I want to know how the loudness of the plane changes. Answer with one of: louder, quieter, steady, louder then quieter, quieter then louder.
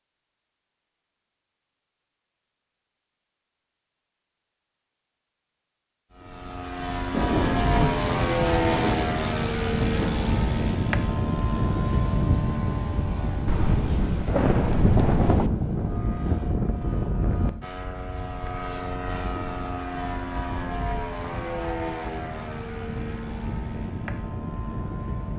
quieter.